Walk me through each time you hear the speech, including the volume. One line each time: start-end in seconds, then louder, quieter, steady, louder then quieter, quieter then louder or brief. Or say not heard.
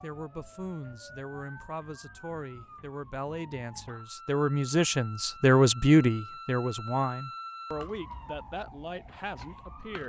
0.0-10.0 louder then quieter.